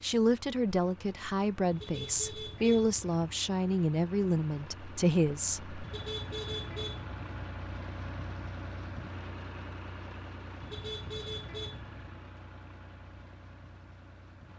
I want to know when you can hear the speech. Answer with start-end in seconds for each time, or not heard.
0.0-5.8.